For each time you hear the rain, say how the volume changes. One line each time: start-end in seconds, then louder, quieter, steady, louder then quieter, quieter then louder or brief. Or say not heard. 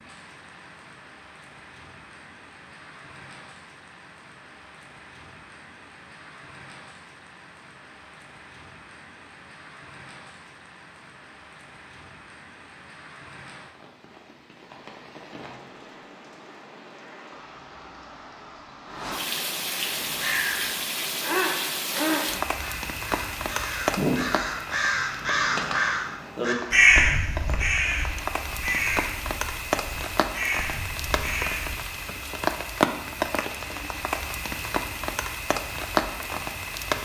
0.0-37.0 louder.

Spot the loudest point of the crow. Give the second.
27 s.